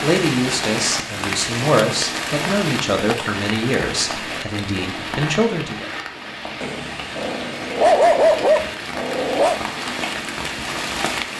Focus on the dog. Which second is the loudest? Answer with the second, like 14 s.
8 s.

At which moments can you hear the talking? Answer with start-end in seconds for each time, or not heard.
0.0-5.9.